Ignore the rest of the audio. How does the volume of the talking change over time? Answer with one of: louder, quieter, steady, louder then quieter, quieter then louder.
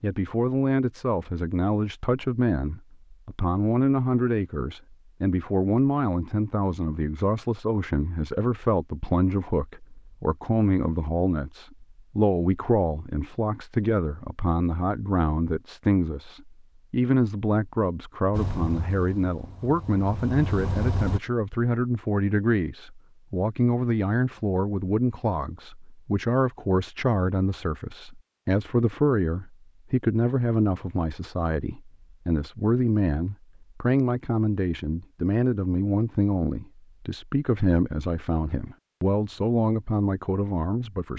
steady.